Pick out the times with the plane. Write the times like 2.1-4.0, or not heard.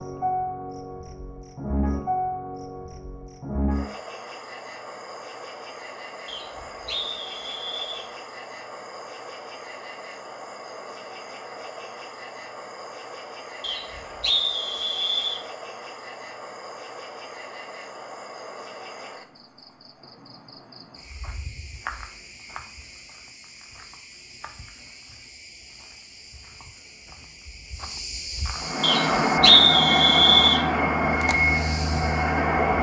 28.6-32.7.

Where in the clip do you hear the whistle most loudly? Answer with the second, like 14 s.
30 s.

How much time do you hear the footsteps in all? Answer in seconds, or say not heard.
not heard.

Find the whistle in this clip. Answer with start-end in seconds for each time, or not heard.
6.2-8.1, 13.6-15.4, 28.8-30.6.